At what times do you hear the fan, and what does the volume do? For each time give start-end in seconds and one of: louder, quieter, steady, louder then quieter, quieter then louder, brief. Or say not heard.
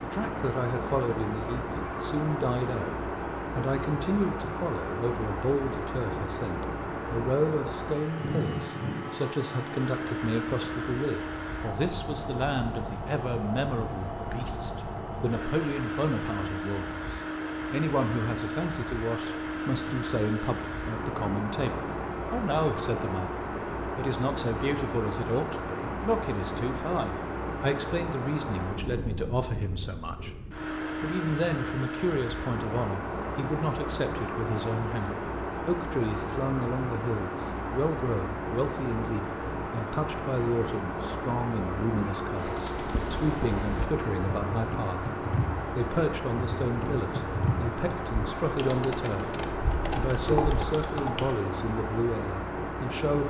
0.0-53.2 steady.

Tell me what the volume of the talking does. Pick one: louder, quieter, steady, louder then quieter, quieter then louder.
steady.